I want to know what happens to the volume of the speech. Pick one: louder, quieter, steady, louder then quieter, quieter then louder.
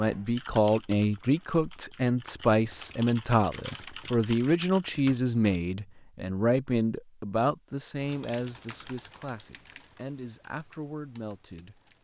quieter.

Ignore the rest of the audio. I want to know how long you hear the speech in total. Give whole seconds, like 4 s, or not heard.
12 s.